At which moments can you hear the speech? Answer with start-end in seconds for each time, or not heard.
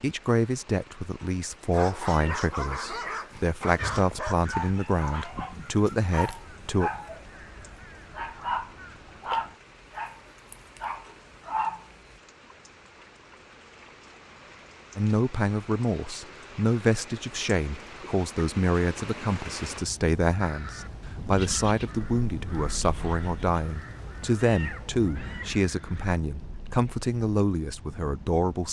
0.0-6.9, 14.9-28.6.